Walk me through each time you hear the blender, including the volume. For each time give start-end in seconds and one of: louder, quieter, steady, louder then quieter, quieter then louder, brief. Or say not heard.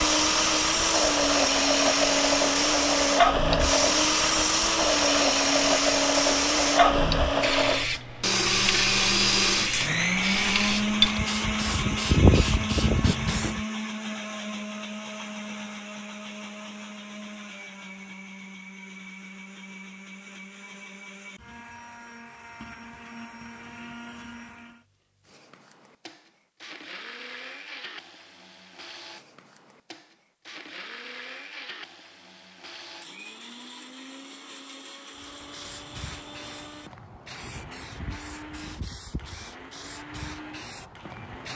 0.0-41.5 quieter.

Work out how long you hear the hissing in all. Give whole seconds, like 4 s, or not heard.
20 s.